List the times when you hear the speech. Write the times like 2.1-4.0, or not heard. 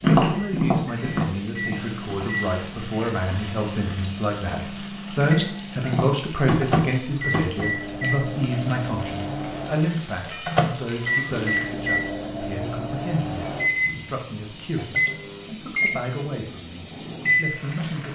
0.2-18.0.